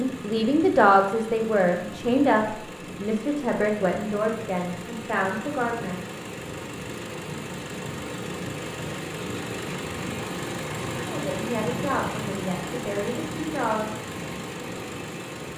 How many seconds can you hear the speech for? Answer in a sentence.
The speech can be heard for 9 seconds in total.